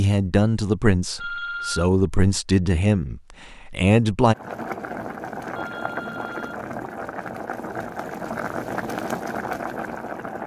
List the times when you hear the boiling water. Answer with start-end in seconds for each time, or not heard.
4.3-10.4.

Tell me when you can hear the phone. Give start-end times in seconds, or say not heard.
1.1-1.9, 5.5-6.6.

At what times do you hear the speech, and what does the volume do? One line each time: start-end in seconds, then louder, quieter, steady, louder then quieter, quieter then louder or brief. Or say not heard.
0.0-4.3 quieter then louder.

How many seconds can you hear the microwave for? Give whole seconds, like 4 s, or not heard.
not heard.